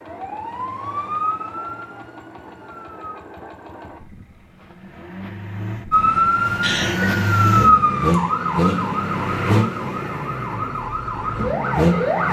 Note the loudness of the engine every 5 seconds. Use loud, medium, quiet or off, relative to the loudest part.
quiet, loud, loud.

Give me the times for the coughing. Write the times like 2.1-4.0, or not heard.
6.6-7.1.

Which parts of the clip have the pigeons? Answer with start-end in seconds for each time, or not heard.
not heard.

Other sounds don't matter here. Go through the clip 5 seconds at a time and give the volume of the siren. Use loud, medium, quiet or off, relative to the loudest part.
medium, loud, medium.